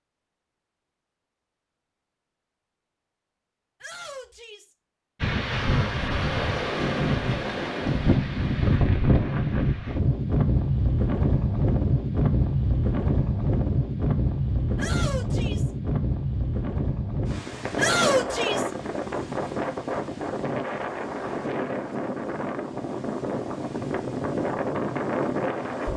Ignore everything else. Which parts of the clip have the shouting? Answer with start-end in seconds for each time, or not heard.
3.8-4.8, 14.8-15.7, 17.8-18.7.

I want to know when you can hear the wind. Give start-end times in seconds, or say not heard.
5.2-25.9.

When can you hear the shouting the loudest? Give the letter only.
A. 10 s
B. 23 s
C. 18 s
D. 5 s
C.